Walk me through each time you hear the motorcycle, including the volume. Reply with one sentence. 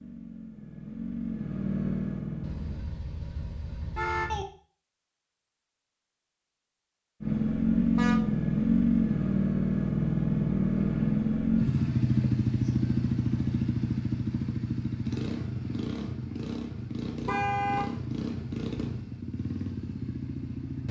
You can hear the motorcycle briefly from 0.0 to 2.9 s; and from 7.2 to 20.8 s, getting quieter.